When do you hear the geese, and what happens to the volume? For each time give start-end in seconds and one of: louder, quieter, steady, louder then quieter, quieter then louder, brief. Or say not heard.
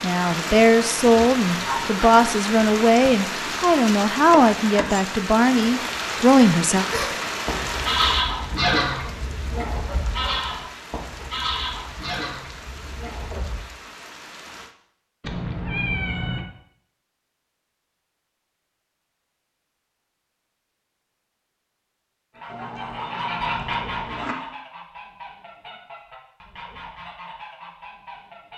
6.9-13.6 quieter
22.3-28.5 quieter.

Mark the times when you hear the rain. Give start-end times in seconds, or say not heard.
0.0-14.8.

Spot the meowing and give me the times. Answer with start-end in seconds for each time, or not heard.
1.6-2.1, 15.2-16.4, 22.4-24.4.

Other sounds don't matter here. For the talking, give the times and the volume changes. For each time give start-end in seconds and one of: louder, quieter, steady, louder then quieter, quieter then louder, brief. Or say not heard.
0.0-6.8 steady.